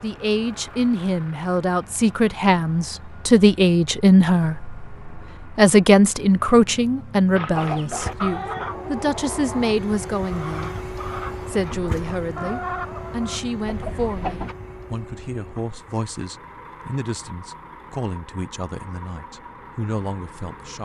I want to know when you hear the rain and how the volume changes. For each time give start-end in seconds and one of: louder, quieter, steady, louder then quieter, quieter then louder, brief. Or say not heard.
not heard.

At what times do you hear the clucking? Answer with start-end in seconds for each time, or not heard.
7.3-14.6.